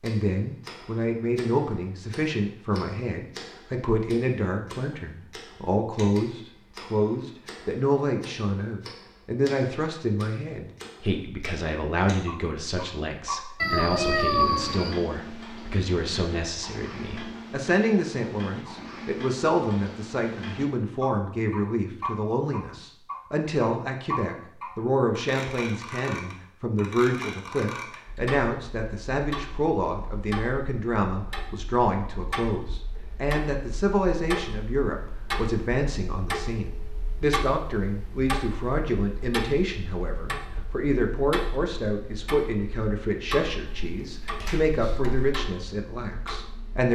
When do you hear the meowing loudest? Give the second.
14 s.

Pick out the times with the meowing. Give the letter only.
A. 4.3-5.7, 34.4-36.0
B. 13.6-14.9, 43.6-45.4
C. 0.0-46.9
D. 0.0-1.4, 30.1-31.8
B.